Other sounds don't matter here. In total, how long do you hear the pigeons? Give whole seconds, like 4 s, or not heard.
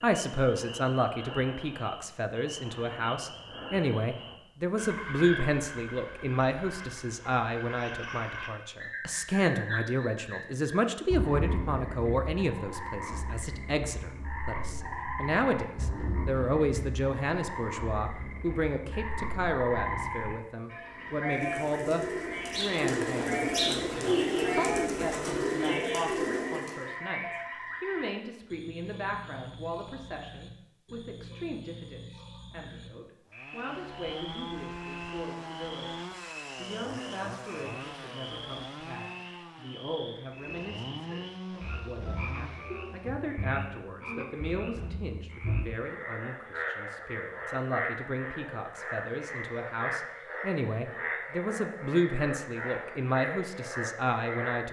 6 s.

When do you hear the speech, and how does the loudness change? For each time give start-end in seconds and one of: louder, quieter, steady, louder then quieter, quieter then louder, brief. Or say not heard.
0.0-54.6 quieter then louder.